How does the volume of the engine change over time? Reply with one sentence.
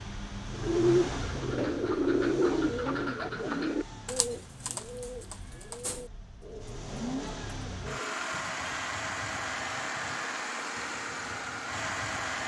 The volume of the engine goes down, then up.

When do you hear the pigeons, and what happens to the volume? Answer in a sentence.
The pigeons can be heard from 0.5 to 8.2 s, getting quieter.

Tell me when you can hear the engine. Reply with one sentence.
The engine can be heard from 0.0 to 12.4 s.